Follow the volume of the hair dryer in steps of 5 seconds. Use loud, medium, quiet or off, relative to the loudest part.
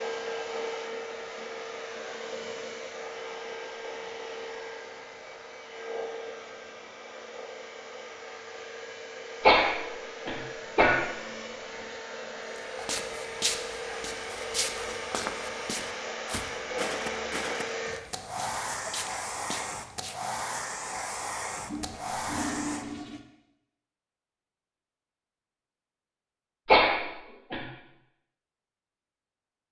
loud, medium, loud, loud, loud, off.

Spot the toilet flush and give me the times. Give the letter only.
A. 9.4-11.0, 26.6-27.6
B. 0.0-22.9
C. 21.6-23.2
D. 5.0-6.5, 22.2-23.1
C.